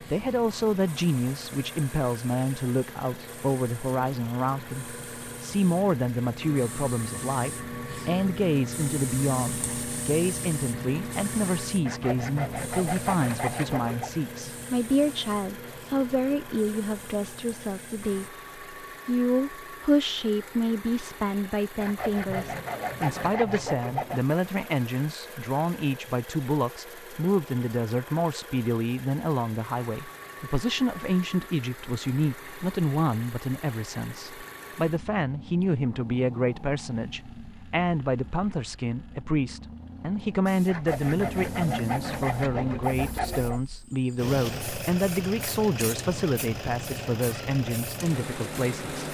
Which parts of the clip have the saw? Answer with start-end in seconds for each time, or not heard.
11.8-14.1, 21.8-24.4, 40.6-43.6.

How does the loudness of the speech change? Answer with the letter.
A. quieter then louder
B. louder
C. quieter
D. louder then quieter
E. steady
E.